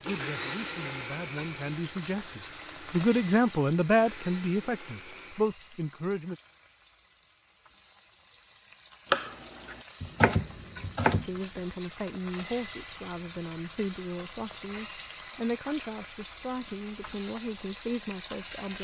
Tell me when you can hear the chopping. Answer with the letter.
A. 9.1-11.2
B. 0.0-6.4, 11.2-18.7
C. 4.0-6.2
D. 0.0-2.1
A.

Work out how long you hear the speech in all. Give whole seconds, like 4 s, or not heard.
14 s.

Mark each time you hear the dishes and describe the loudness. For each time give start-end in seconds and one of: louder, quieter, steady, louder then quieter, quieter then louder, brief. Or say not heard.
not heard.